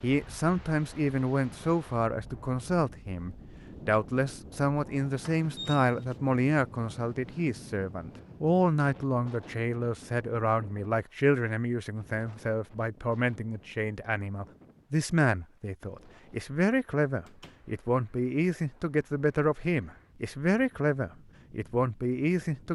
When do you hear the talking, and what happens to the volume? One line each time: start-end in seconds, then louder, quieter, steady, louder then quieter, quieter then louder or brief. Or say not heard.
0.0-22.7 steady.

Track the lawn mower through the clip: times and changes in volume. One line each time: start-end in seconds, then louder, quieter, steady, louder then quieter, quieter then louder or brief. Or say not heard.
not heard.